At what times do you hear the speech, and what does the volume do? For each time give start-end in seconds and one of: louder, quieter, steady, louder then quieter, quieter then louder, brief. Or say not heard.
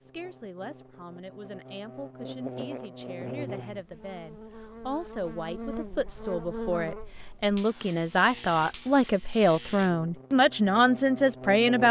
0.0-11.8 louder.